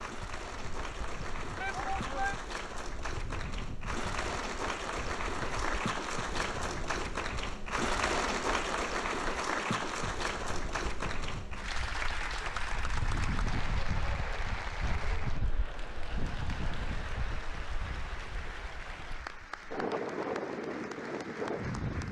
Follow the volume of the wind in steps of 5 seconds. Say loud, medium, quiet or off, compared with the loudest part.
quiet, quiet, medium, medium, loud.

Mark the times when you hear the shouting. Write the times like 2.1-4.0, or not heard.
1.6-2.4.